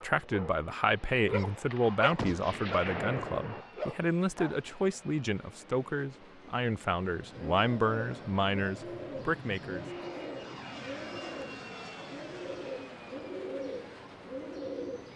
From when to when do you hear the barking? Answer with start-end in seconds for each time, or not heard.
0.0-4.6.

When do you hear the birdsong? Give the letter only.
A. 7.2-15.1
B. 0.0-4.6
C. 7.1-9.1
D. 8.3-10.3
A.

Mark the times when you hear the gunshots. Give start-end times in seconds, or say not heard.
1.7-3.6.